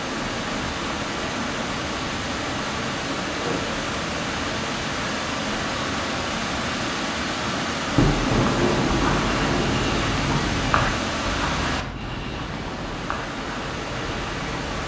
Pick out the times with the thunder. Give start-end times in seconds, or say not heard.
8.0-10.6.